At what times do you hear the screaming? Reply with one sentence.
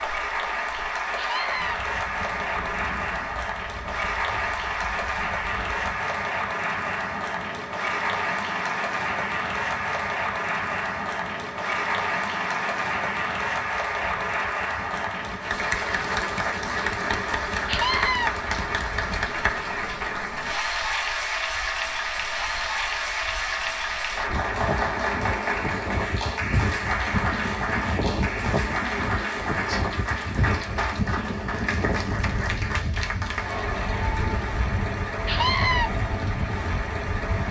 You can hear the screaming from 1.1 to 1.8 s, from 17.6 to 18.3 s and from 35.2 to 35.9 s.